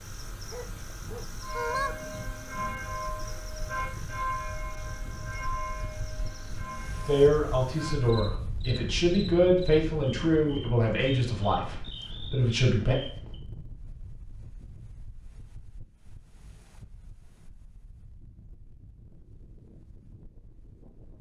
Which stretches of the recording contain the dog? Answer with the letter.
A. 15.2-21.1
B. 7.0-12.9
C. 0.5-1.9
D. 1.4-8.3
C.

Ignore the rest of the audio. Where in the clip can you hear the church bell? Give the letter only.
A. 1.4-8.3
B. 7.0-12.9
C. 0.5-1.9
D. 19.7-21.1
A.